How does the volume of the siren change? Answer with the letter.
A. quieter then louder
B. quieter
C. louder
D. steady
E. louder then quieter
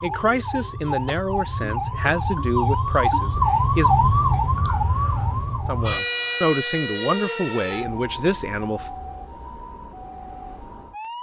E.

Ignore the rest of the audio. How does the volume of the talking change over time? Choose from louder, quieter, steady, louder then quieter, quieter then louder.
steady.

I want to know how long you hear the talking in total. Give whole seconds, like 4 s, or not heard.
7 s.